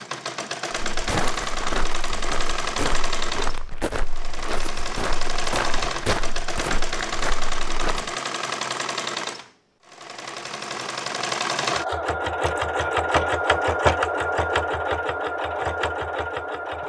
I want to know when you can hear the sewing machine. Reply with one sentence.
You can hear the sewing machine from 0.0 to 16.8 s.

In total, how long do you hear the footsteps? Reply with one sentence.
The footsteps can be heard for 7 seconds in total.